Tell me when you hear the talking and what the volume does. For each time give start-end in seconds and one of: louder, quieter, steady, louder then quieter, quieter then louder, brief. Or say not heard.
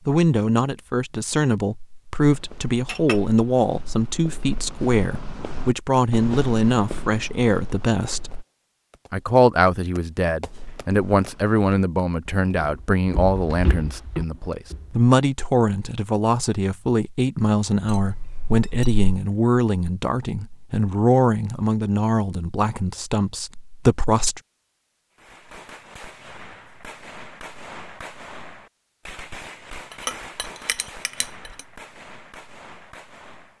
0.1-8.3 steady
9.1-24.4 steady.